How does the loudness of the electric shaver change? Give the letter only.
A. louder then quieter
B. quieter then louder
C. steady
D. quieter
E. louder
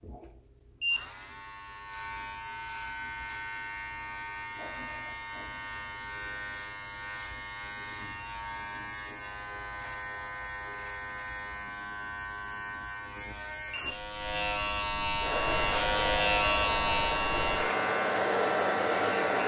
E.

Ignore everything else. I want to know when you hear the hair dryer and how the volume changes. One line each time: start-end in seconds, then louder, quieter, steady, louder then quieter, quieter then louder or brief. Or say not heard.
15.2-19.4 louder.